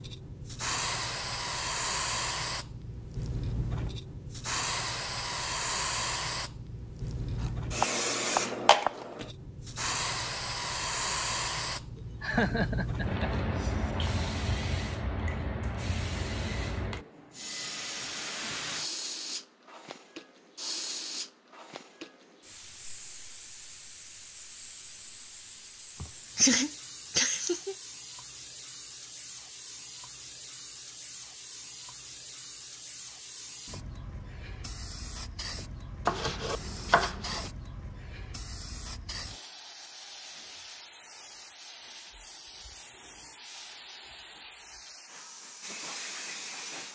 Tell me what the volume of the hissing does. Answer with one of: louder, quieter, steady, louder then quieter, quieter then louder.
quieter.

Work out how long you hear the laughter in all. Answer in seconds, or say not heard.
3 s.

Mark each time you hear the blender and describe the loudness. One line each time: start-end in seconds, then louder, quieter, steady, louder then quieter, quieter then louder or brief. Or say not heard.
not heard.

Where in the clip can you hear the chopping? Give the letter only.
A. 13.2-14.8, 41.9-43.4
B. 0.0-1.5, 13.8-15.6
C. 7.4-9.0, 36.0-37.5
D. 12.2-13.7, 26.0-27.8
C.